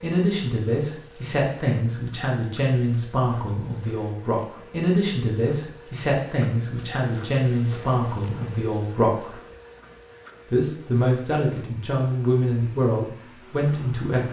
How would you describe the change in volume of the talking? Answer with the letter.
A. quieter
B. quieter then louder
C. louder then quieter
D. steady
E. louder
D.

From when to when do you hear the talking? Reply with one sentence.
The talking can be heard from 0.0 to 9.3 s and from 10.5 to 14.2 s.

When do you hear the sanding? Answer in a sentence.
You can't hear the sanding here.